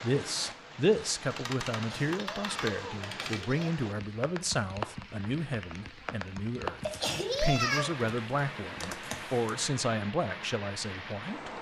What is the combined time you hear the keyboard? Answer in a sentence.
The keyboard can be heard for 5 seconds in total.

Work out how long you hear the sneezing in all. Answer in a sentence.
The sneezing can be heard for 3 seconds in total.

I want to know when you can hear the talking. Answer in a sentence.
You can hear the talking from 0.0 to 11.5 s.